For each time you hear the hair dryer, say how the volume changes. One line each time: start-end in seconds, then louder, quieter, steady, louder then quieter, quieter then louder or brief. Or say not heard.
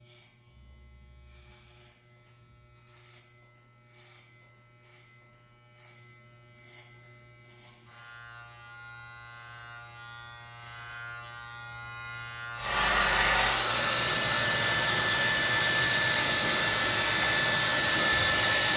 12.6-18.7 steady.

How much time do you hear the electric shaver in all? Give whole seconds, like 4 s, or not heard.
19 s.